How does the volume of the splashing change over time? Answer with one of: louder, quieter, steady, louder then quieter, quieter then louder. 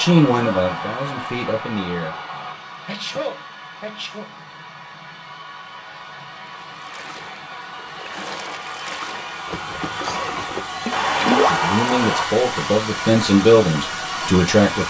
louder.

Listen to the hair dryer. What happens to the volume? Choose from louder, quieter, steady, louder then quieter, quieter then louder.
quieter then louder.